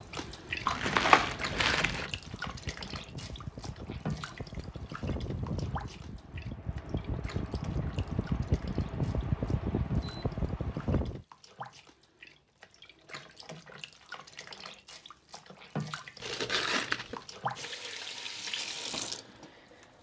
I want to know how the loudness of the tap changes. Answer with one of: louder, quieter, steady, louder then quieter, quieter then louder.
quieter then louder.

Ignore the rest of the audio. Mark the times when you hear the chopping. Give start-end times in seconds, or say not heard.
not heard.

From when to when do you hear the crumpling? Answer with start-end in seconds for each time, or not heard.
0.7-2.0, 16.2-17.2.